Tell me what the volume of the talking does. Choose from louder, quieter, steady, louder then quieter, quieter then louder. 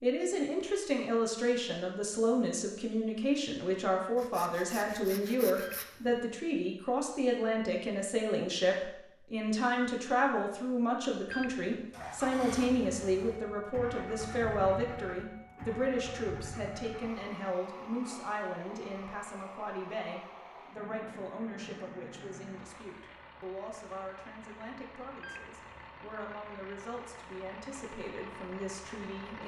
quieter.